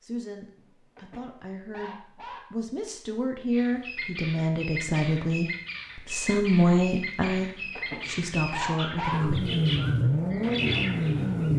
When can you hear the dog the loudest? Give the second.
9 s.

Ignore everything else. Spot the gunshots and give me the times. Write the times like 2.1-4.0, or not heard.
not heard.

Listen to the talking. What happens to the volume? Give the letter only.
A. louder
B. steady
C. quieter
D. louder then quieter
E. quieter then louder
D.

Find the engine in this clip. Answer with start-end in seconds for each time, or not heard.
9.1-11.5.